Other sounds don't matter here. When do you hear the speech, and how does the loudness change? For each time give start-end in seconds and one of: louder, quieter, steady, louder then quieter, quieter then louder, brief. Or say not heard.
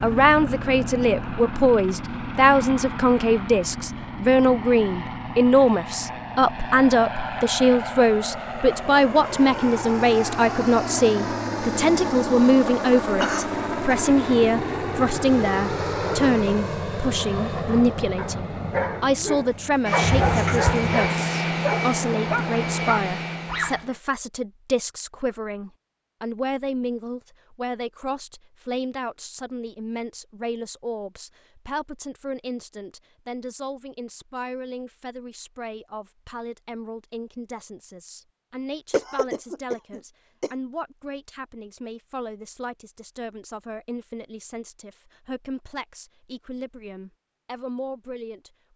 0.0-48.7 quieter.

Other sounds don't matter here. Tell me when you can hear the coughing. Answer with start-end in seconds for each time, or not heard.
13.2-14.0, 20.0-20.9, 38.9-40.5.